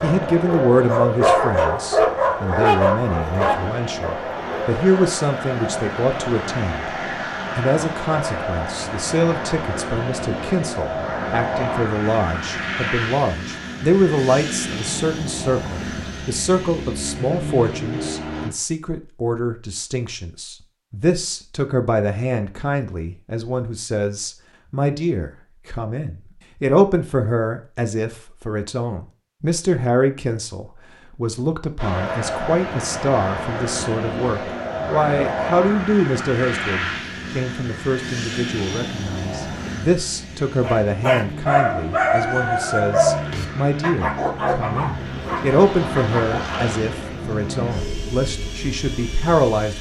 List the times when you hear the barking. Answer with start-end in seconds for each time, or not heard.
0.0-5.0, 40.6-46.8.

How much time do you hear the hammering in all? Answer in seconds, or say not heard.
not heard.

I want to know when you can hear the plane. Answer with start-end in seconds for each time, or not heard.
0.0-18.5, 31.8-49.7.